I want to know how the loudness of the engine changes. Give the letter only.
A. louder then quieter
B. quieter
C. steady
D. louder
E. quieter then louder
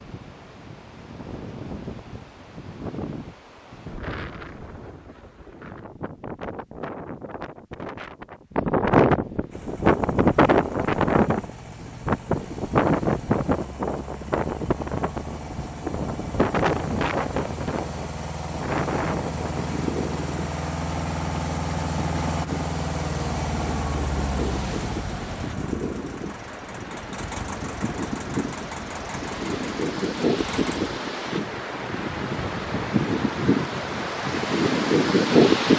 A.